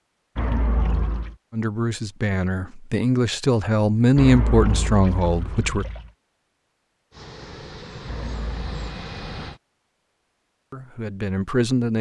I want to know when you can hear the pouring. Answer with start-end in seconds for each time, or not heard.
0.3-1.4, 4.2-6.1, 8.1-8.9.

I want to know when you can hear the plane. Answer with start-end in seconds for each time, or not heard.
7.1-9.6.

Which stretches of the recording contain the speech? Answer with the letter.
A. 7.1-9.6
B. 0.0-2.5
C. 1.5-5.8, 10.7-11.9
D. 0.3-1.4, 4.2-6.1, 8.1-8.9
C.